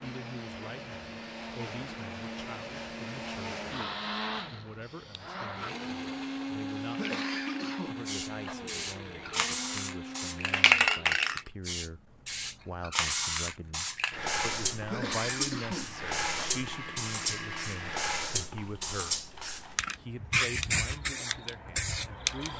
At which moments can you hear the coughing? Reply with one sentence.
You can hear the coughing from 7.0 to 8.6 s and from 14.9 to 16.5 s.